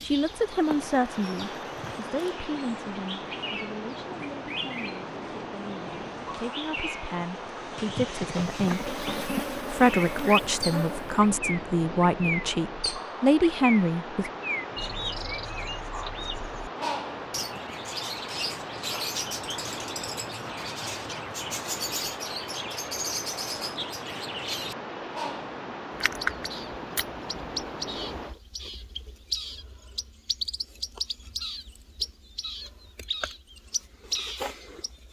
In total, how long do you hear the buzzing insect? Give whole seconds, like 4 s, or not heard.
3 s.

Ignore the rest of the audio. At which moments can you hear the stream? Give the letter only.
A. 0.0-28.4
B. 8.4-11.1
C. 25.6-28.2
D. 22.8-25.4
A.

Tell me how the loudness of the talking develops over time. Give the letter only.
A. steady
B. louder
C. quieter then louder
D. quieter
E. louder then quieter
C.